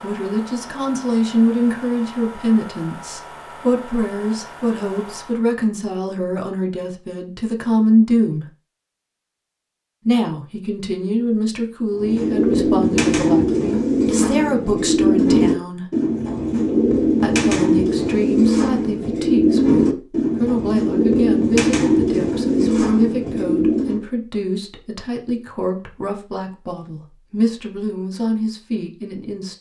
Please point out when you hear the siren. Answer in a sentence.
The siren can't be heard in this clip.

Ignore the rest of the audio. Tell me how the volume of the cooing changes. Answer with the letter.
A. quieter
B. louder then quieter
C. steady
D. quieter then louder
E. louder
C.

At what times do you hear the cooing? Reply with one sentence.
The cooing can be heard from 11.9 to 24.1 s.